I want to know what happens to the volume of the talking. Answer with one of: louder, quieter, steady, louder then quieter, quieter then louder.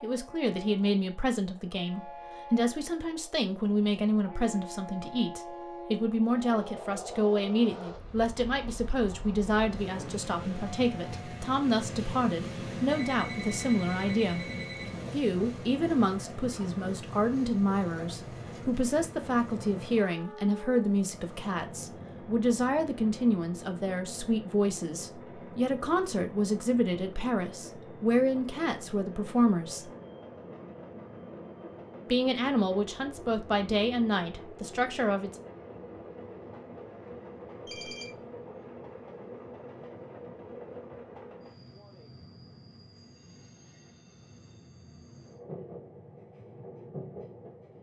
steady.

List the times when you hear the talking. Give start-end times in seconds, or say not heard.
0.0-14.4, 15.1-29.9, 32.1-35.4.